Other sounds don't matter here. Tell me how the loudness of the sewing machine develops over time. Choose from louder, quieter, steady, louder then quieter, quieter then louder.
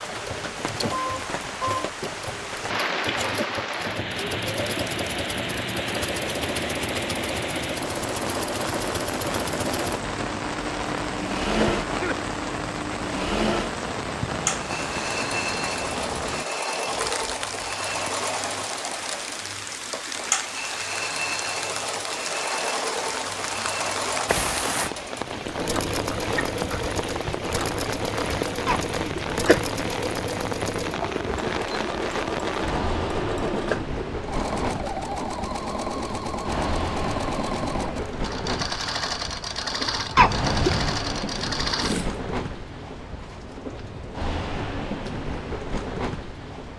steady.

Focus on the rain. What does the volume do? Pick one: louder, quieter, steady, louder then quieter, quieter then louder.
steady.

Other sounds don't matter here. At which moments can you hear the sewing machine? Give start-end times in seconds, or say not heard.
0.0-42.2.